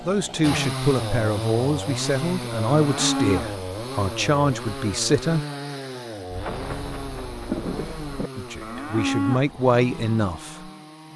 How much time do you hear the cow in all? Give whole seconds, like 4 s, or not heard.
2 s.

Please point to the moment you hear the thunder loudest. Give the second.
8 s.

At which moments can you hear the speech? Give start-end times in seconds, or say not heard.
0.0-5.5, 8.3-10.7.